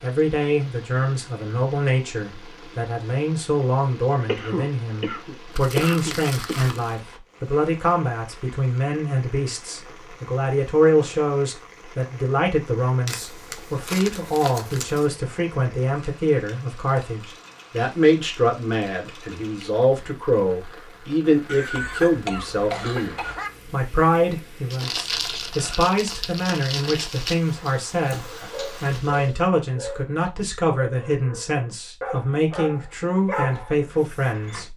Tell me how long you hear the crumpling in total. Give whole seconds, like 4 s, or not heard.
6 s.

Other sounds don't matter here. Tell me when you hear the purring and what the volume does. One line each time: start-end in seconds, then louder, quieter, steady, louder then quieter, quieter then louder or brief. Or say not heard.
not heard.